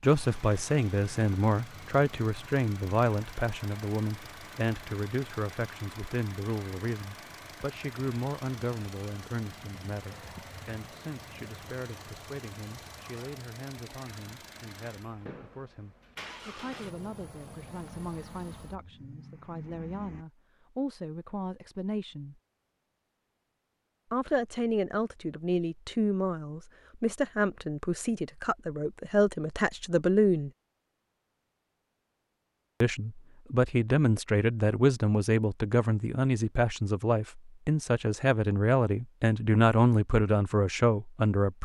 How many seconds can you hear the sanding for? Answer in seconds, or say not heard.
not heard.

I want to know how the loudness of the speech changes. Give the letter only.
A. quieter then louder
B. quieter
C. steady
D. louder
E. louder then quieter
A.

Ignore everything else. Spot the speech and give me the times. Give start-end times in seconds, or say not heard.
0.0-22.4, 24.1-30.5, 32.8-41.6.